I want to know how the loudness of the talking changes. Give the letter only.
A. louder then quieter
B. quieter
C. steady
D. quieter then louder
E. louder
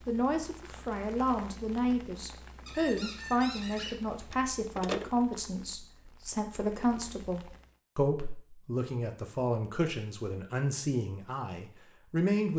C.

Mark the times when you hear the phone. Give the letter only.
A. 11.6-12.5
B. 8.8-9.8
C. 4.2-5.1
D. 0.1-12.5
C.